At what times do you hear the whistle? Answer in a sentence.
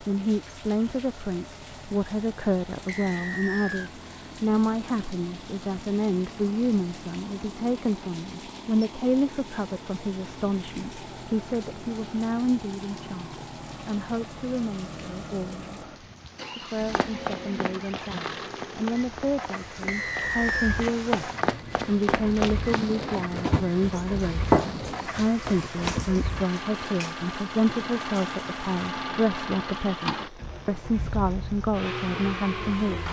You can hear the whistle from 2.9 to 3.9 s and from 19.9 to 20.9 s.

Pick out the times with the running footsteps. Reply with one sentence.
You can hear the running footsteps from 16.9 to 26.2 s.